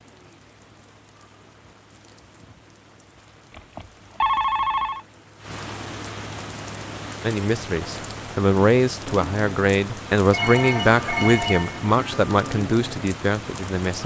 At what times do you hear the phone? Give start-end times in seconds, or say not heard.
3.5-5.0, 10.3-12.6.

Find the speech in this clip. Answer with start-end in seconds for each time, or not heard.
7.2-14.0.